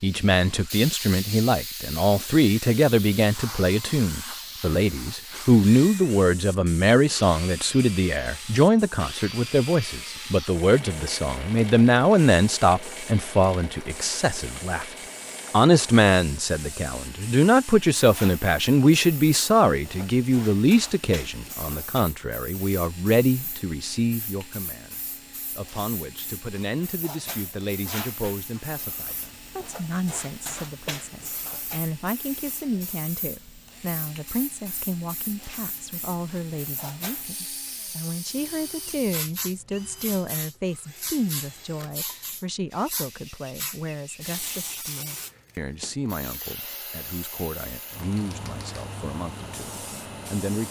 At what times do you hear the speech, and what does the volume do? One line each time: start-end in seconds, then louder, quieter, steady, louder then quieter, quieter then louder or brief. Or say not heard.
0.0-50.6 quieter.